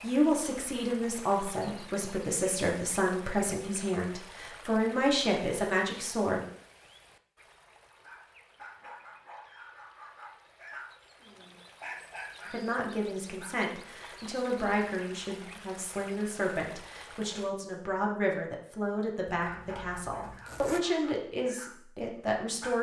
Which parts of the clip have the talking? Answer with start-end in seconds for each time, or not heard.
0.0-6.4, 12.5-22.7.